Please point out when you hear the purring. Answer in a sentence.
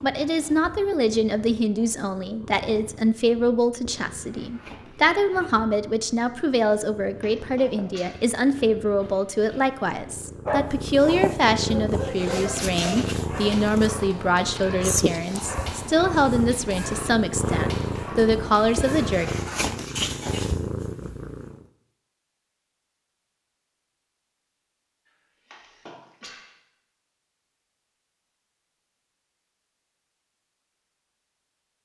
You can hear the purring from 0.0 to 21.6 s.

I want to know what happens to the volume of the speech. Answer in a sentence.
The loudness of the speech stays about the same.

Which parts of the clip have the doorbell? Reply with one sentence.
You can't hear the doorbell here.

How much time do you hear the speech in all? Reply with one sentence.
The speech can be heard for 19 seconds in total.